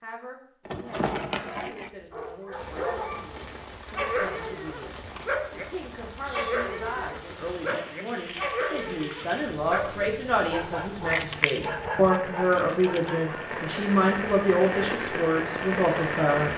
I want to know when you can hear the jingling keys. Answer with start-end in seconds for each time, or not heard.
0.7-2.4, 8.3-9.0, 11.1-13.1.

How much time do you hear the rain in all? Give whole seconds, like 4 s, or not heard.
14 s.